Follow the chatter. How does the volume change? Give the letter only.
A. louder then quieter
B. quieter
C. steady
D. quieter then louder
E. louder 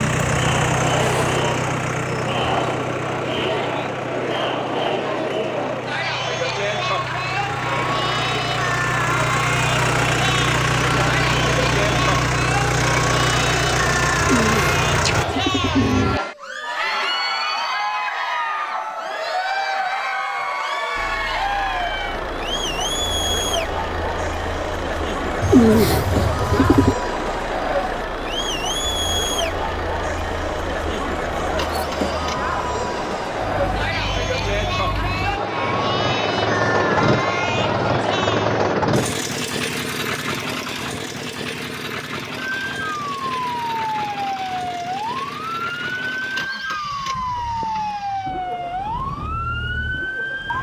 C.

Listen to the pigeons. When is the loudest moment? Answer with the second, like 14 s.
26 s.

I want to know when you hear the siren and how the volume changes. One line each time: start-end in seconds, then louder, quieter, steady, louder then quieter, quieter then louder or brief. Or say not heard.
42.5-50.5 steady.